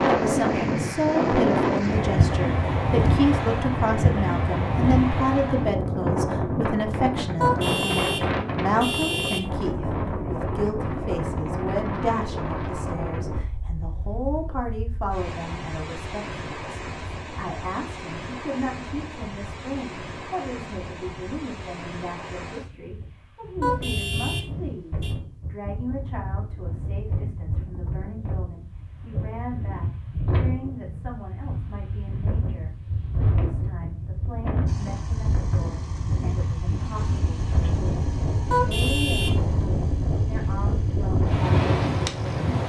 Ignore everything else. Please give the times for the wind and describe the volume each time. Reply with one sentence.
You can hear the wind from 0.0 to 42.6 s, getting quieter then louder.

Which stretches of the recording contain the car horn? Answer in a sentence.
You can hear the car horn from 7.4 to 9.4 s, from 23.6 to 25.1 s and from 38.5 to 39.5 s.